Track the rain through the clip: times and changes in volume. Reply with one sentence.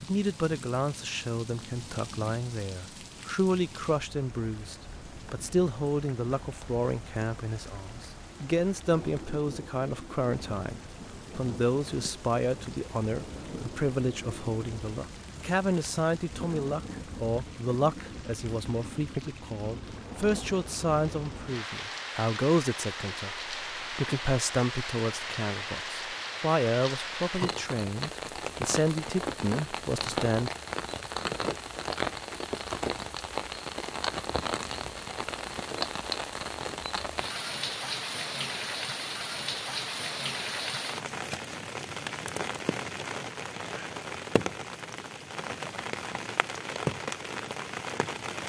You can hear the rain from 0.0 to 48.4 s, getting louder.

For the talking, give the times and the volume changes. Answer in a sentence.
The talking can be heard from 0.0 to 30.5 s, at a steady volume.